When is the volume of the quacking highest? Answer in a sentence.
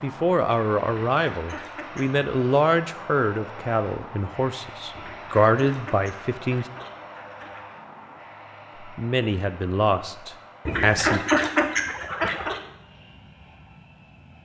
The volume of the quacking peaks at 11 seconds.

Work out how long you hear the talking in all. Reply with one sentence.
The talking can be heard for 9 seconds in total.